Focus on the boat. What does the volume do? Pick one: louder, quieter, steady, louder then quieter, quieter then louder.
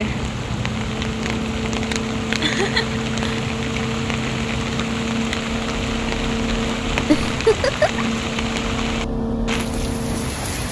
steady.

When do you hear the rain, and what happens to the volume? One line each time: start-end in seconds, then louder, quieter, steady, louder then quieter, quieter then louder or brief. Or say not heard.
0.0-10.6 steady.